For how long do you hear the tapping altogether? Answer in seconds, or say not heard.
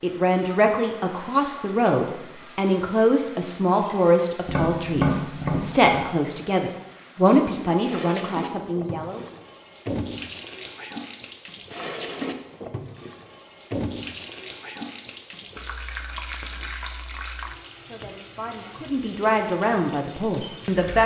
2 s.